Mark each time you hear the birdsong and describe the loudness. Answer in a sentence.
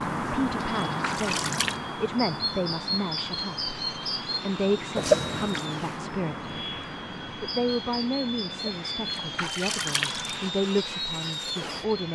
The birdsong can be heard from 0.0 to 12.0 s, getting quieter.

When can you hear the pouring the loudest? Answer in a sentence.
The loudest moment of the pouring is at 5 seconds.